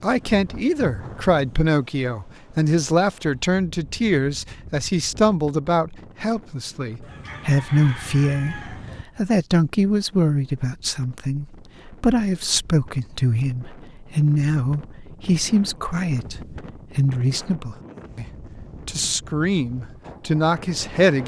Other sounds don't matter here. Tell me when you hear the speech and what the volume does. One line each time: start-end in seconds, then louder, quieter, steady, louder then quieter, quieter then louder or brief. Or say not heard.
0.0-18.2 steady
18.9-21.2 brief.